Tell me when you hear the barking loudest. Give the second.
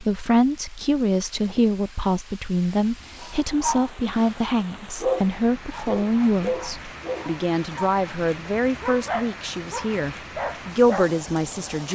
5 s.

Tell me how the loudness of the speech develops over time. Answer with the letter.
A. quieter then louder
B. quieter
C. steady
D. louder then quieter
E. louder
C.